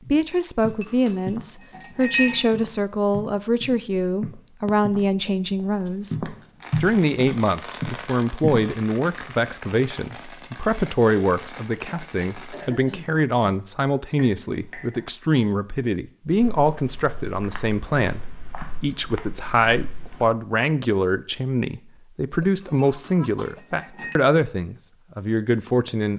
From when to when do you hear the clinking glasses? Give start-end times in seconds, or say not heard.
0.6-2.6, 14.1-15.1, 22.6-24.1.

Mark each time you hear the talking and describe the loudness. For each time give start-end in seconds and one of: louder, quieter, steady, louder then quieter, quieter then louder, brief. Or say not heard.
0.1-26.1 steady.